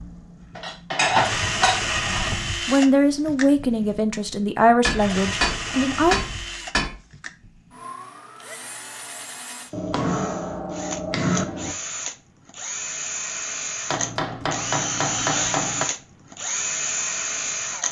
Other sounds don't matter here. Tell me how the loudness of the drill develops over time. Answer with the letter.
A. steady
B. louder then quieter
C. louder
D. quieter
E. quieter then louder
E.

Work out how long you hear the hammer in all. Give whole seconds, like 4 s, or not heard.
8 s.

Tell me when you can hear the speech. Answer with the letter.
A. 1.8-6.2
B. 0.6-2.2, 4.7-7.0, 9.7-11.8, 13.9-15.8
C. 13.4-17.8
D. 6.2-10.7
A.